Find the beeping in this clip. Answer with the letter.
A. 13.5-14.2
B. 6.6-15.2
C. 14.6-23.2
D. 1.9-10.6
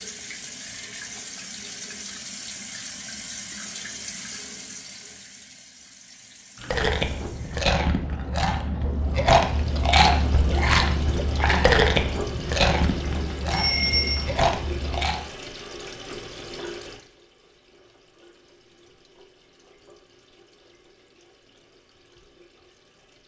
A.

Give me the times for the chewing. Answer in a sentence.
You can hear the chewing from 6.6 to 15.2 s.